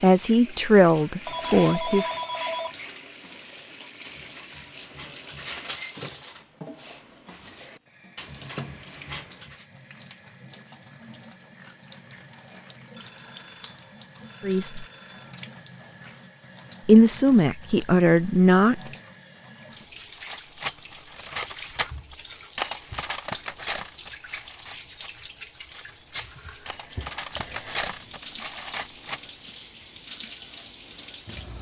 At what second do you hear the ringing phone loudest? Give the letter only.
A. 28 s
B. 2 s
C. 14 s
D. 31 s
B.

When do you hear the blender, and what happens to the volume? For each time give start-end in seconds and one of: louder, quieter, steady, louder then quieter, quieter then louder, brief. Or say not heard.
not heard.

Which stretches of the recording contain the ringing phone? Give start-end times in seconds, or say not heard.
1.2-3.0, 12.9-15.4, 26.6-28.2.